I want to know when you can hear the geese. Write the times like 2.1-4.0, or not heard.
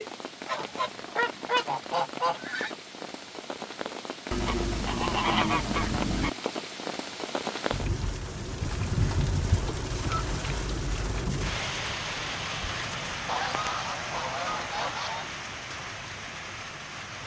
0.5-2.8, 4.3-6.3, 8.6-10.2, 13.2-15.3.